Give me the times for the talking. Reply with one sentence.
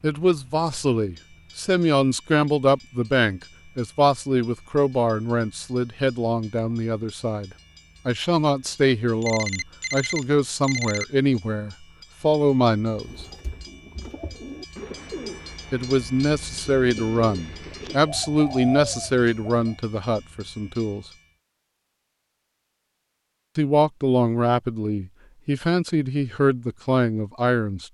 The talking can be heard from 0.0 to 13.2 s, from 15.7 to 21.1 s and from 23.6 to 27.8 s.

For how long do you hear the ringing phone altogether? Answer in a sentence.
The ringing phone can be heard for 2 seconds in total.